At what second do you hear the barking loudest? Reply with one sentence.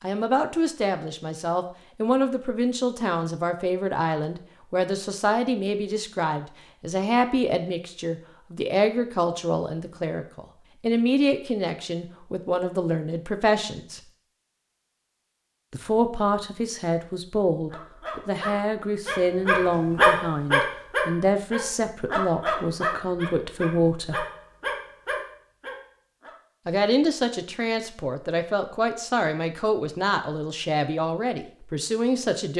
The volume of the barking peaks at 20 seconds.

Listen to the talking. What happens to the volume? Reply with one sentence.
The volume of the talking stays about the same.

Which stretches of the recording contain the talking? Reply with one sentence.
The talking can be heard from 0.0 to 14.0 s, from 15.7 to 24.2 s and from 26.6 to 32.5 s.